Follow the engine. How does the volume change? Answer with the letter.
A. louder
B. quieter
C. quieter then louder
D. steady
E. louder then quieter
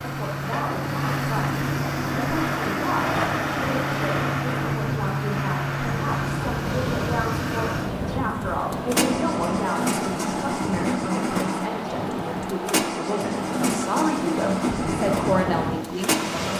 D.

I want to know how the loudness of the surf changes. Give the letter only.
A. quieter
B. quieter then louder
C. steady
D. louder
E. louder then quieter
C.